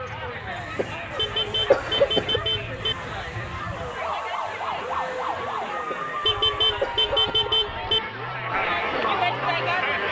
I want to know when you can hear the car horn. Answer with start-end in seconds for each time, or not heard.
1.1-3.0, 6.2-8.0.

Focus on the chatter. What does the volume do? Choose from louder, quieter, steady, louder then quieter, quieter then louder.
louder.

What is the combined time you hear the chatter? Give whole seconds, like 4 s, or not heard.
10 s.